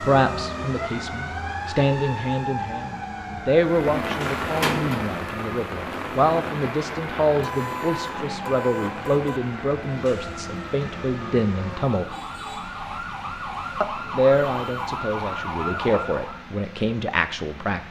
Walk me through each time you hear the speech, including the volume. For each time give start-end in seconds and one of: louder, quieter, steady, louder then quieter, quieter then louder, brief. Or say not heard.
0.0-12.1 steady
13.8-17.8 quieter then louder.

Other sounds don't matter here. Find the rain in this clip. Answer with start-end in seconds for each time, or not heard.
3.6-17.8.